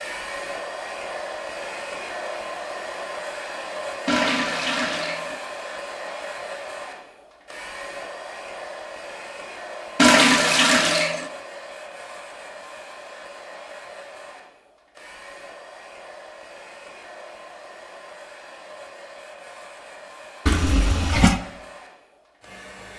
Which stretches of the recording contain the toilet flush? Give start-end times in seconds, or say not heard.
4.0-5.4, 9.9-11.2, 20.4-21.4.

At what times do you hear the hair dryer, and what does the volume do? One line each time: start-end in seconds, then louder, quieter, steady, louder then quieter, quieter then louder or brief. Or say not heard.
0.0-22.9 quieter.